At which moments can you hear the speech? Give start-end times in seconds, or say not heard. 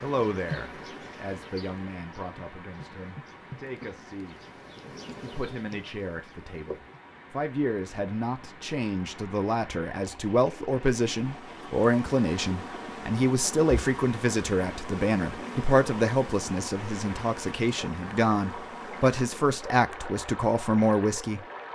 0.0-4.5, 5.2-21.4.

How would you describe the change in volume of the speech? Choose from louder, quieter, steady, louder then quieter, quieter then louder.
louder.